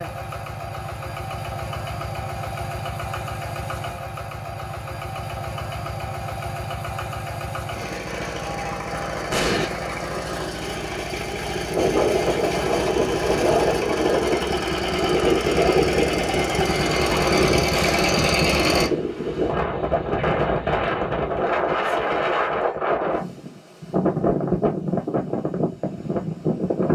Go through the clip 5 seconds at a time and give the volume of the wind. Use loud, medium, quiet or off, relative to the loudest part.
off, off, loud, loud, loud, loud.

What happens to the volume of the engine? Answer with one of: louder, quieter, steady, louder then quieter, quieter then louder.
louder.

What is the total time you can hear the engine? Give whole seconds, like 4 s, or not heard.
19 s.